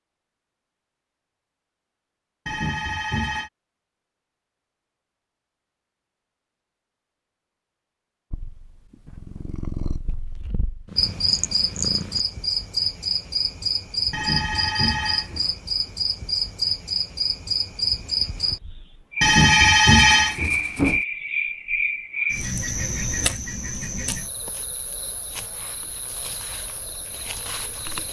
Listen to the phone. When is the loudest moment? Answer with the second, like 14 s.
20 s.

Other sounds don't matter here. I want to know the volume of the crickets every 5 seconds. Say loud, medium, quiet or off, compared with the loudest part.
off, off, loud, loud, loud, quiet.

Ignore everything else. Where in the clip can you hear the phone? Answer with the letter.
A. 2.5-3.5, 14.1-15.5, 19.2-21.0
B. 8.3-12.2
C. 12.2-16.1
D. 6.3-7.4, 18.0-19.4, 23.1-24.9
A.